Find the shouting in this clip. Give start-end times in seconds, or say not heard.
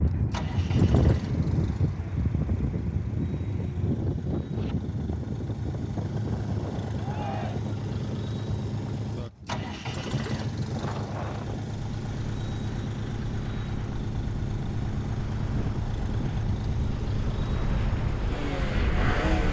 7.0-7.6.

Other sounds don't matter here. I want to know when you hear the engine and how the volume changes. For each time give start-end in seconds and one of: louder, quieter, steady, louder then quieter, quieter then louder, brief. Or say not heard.
0.1-19.4 louder.